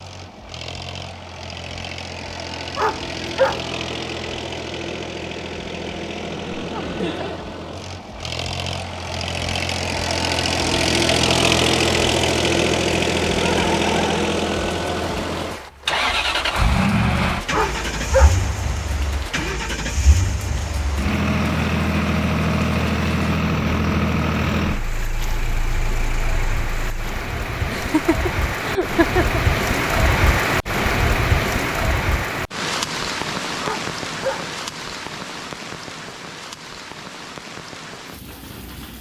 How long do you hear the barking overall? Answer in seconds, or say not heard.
3 s.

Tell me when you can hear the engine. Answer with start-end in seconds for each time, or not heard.
0.0-27.2.